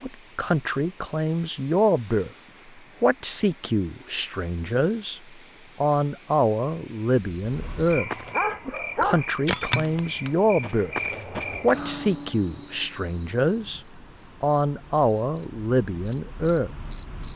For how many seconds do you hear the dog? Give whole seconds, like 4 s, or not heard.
2 s.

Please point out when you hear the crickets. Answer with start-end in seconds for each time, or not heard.
7.1-17.3.